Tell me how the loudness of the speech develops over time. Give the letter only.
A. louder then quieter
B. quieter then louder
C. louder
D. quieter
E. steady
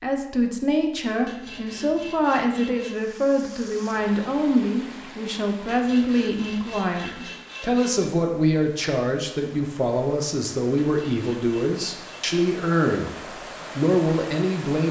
E.